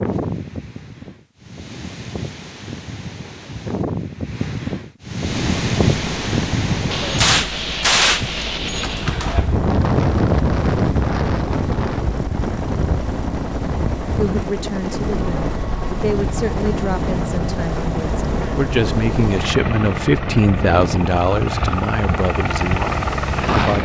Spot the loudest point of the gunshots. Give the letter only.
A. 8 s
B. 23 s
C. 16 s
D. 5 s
A.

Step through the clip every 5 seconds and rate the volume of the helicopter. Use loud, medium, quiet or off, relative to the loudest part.
off, medium, medium, loud, loud.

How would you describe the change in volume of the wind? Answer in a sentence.
The volume of the wind goes up, then down.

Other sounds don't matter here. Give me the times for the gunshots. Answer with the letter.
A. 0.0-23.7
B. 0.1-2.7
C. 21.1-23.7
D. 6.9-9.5
D.